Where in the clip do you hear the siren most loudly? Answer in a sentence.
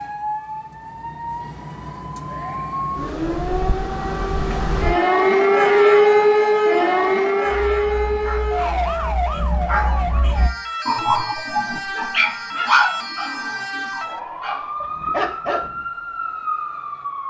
The volume of the siren peaks at 6 seconds.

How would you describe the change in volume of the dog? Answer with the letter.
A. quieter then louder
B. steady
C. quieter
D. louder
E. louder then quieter
E.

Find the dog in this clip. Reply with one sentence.
The dog can be heard from 7.5 to 15.8 s.